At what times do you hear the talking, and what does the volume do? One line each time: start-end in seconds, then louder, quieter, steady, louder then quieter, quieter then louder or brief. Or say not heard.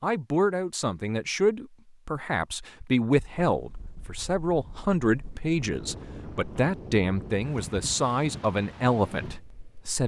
0.0-10.0 steady.